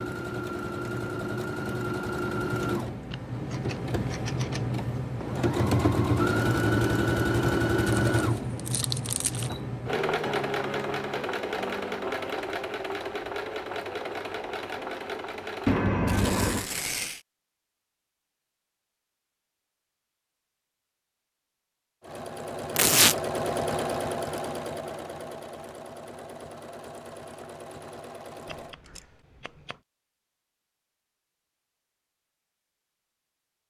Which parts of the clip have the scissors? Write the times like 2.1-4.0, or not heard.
3.1-4.6, 15.7-16.7, 28.4-29.8.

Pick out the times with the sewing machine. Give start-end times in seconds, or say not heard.
0.0-15.9, 22.0-28.8.